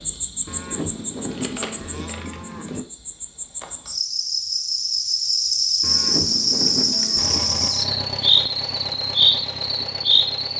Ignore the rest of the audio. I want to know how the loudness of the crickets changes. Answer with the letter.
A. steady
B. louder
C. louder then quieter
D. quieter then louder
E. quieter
B.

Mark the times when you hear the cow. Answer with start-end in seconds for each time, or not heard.
0.5-2.9, 5.8-7.8.